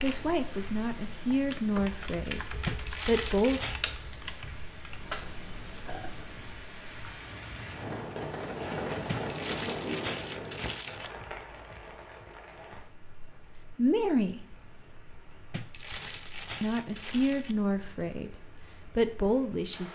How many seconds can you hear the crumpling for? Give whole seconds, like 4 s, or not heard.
5 s.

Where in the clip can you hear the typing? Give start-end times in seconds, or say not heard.
0.0-7.2.